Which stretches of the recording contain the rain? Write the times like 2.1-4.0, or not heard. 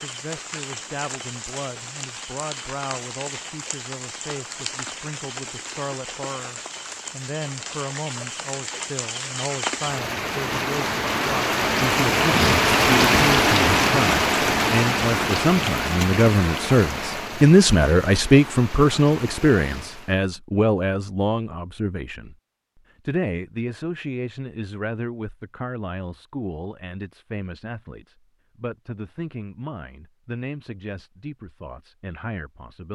0.0-20.2.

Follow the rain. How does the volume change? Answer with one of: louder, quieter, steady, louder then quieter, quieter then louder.
louder then quieter.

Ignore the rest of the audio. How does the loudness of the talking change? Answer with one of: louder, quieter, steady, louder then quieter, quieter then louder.
louder then quieter.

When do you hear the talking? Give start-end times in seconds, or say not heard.
0.0-22.4, 23.1-32.9.